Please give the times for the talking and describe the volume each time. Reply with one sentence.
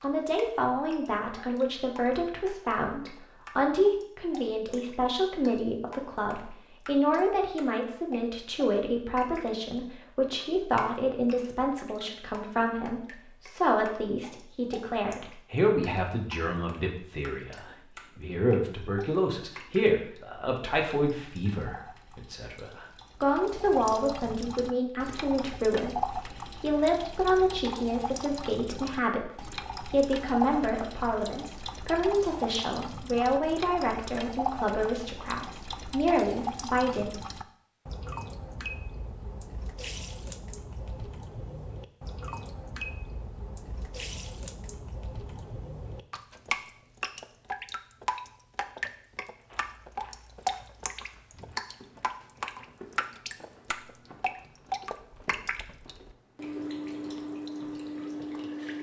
The talking can be heard from 0.0 to 37.2 s, at a steady volume.